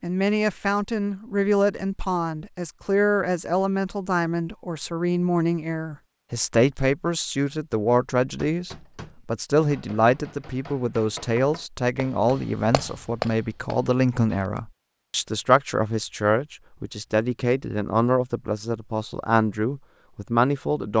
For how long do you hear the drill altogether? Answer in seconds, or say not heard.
not heard.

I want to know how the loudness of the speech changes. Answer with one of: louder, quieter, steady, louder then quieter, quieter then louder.
steady.